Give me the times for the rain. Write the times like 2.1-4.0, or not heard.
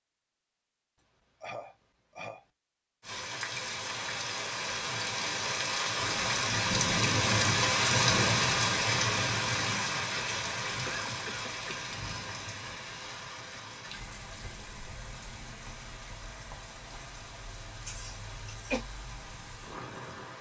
3.0-20.3.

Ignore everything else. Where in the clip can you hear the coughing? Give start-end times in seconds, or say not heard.
0.9-2.5, 10.8-11.8, 17.9-18.9.